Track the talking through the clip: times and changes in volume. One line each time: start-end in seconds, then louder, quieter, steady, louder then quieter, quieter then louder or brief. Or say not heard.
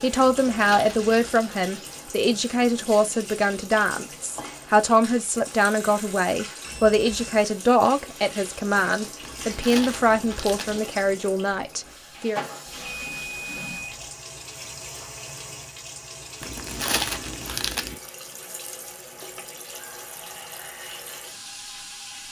0.0-12.4 steady.